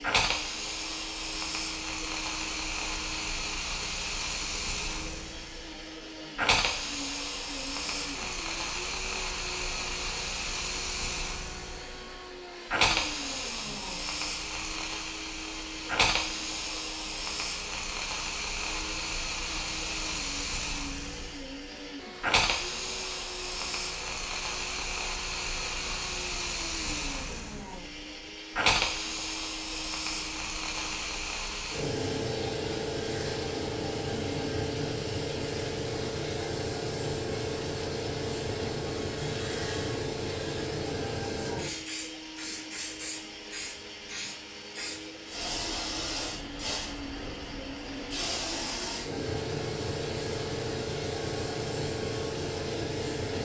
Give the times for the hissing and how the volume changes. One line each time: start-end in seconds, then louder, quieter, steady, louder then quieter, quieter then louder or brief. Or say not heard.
0.0-53.4 steady.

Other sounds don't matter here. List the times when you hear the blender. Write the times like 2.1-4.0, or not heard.
0.0-53.4.